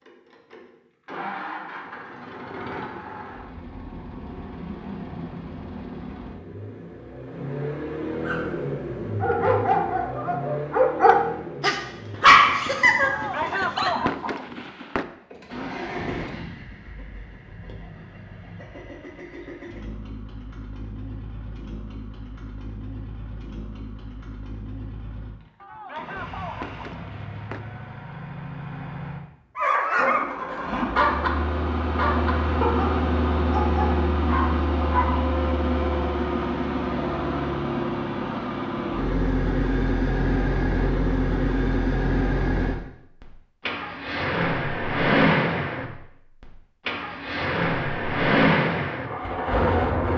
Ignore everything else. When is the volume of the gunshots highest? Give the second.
14 s.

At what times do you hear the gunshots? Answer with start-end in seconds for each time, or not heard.
13.0-15.1, 25.6-27.6.